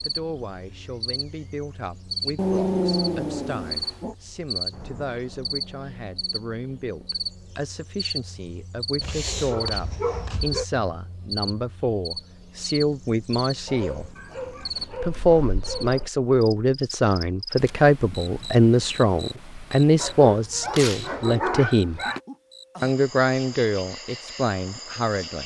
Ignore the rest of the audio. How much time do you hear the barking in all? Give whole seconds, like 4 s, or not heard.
8 s.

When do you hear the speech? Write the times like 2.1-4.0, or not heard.
0.1-14.1, 15.0-22.0, 22.8-25.4.